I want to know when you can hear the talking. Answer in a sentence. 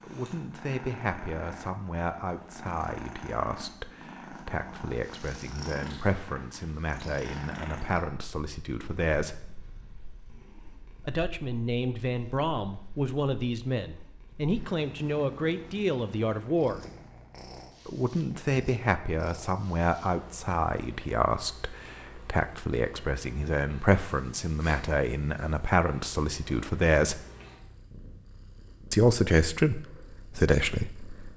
The talking can be heard from 0.0 to 9.4 s, from 11.1 to 16.8 s, from 17.9 to 27.2 s and from 28.9 to 31.3 s.